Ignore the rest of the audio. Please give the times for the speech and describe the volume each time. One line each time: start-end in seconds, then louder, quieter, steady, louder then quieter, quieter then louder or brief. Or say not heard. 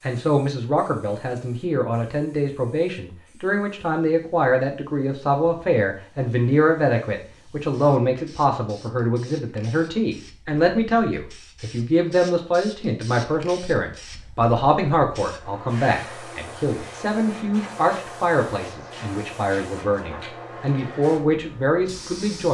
0.0-22.4 steady.